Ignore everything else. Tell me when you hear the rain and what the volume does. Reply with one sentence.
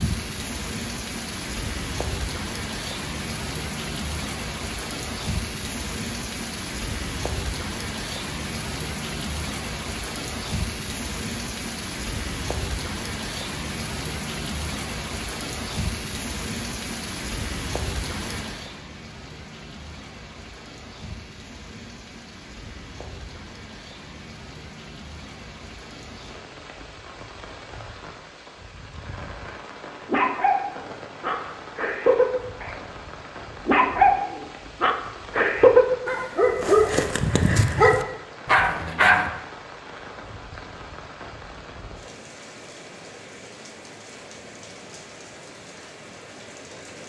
The rain can be heard from 0.0 to 47.0 s, getting quieter.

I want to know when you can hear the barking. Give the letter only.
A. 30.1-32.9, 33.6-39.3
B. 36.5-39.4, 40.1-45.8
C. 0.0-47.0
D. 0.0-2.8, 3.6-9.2
A.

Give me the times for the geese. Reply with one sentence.
The geese can't be heard in this clip.